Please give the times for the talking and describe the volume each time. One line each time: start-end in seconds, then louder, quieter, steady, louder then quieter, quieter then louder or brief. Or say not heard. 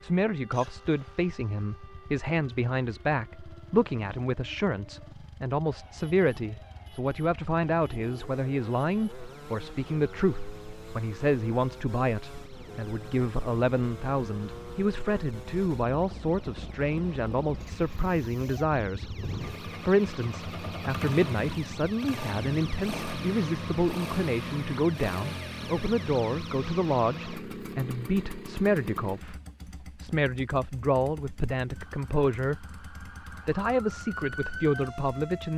0.0-35.5 steady.